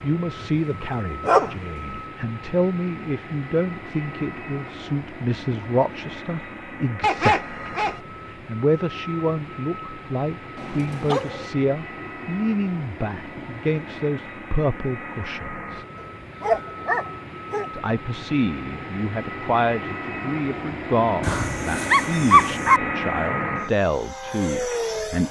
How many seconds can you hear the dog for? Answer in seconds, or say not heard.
6 s.